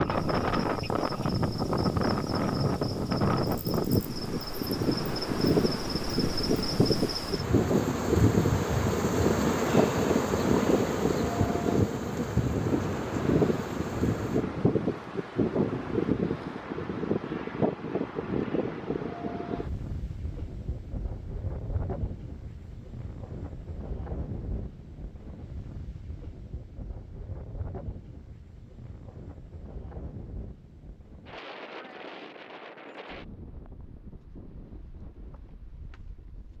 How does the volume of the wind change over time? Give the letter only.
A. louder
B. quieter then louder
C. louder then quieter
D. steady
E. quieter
E.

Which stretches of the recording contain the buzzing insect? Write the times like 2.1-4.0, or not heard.
0.0-14.4.